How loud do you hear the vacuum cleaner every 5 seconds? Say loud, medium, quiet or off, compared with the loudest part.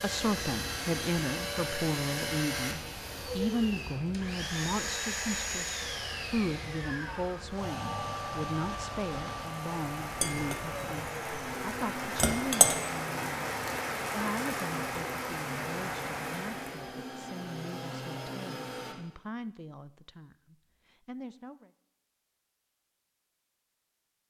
loud, loud, medium, medium, off.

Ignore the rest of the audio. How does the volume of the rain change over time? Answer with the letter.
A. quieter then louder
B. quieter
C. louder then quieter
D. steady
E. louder
E.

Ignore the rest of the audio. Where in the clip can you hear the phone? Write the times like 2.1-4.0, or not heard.
not heard.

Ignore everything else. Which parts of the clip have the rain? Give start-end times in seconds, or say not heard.
0.0-16.9.